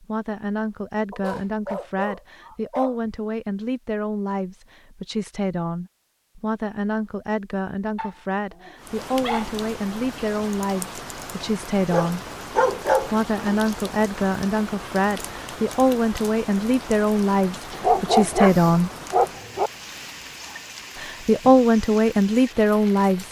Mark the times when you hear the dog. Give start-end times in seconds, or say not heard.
1.1-3.2, 8.0-9.5, 11.9-13.6, 17.7-19.7.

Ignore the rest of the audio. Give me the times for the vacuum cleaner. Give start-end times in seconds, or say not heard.
not heard.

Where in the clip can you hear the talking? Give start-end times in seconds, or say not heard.
0.0-12.2, 13.0-18.9, 20.9-23.2.